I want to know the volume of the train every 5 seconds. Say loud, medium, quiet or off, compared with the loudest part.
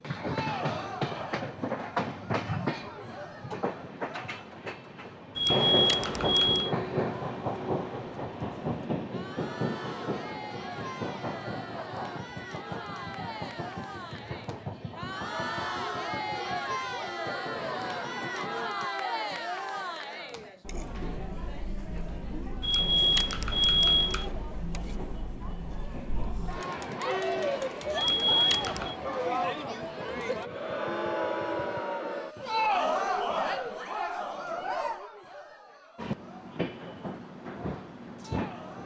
loud, loud, medium, medium, quiet, quiet, quiet, medium.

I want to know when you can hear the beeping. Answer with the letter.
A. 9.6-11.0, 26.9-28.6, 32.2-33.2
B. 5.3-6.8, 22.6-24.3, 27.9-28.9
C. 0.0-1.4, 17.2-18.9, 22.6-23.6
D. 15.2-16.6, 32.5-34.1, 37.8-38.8
B.